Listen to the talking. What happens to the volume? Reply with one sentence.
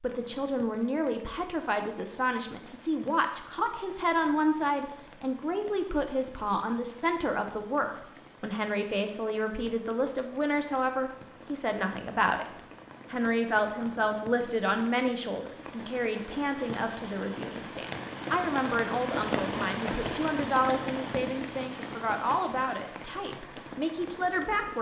The volume of the talking stays about the same.